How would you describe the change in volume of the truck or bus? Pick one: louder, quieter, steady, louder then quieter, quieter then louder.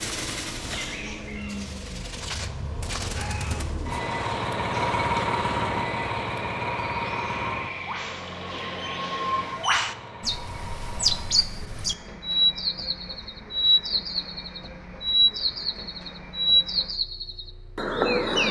louder then quieter.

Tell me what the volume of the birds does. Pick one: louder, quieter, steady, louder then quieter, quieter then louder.
louder.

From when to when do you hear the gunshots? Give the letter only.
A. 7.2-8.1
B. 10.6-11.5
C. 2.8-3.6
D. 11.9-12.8
C.